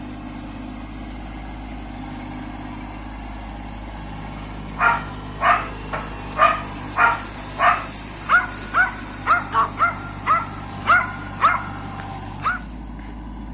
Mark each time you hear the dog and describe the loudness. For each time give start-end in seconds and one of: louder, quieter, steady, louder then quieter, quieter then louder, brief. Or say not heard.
4.8-12.6 steady.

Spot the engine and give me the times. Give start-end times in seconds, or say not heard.
0.0-13.4.